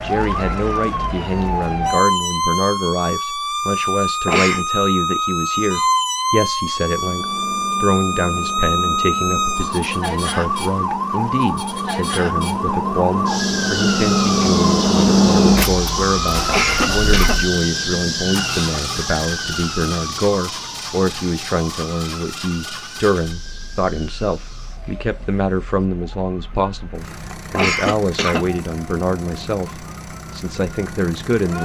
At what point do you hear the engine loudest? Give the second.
15 s.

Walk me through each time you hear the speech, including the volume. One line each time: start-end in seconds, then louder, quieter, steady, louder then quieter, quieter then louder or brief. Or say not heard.
0.0-31.6 steady.